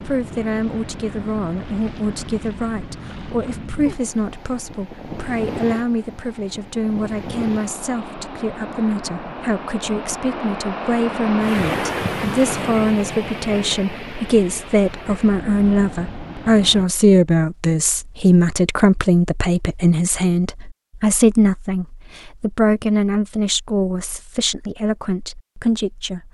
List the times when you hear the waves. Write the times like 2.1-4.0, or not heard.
0.0-16.9.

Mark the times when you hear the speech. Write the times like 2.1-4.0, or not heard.
0.0-26.2.